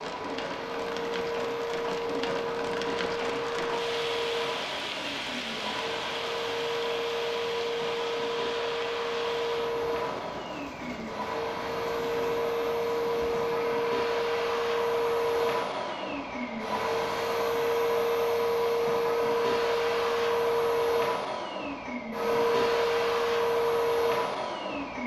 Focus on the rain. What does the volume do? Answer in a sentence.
The volume of the rain goes down.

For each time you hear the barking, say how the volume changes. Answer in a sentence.
The barking can't be heard in this clip.